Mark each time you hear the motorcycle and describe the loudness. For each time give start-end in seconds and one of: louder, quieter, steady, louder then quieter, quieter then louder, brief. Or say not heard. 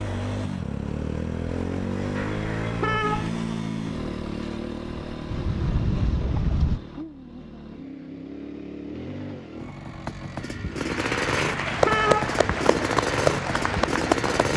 0.0-14.5 quieter then louder.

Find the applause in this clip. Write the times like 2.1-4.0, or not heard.
10.8-14.5.